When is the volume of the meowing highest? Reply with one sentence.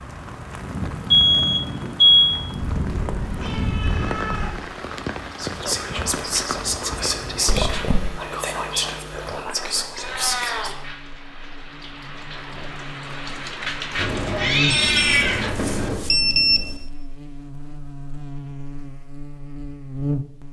The loudest moment of the meowing is at 15 seconds.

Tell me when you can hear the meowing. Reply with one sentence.
The meowing can be heard from 2.5 to 4.6 s, from 9.9 to 10.7 s and from 13.9 to 15.9 s.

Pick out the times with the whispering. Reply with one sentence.
You can hear the whispering from 5.3 to 10.8 s.